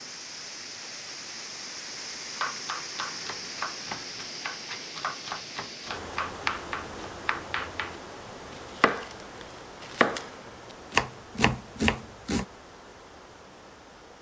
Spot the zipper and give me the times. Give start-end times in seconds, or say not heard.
not heard.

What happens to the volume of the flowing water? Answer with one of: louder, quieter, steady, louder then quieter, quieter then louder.
quieter.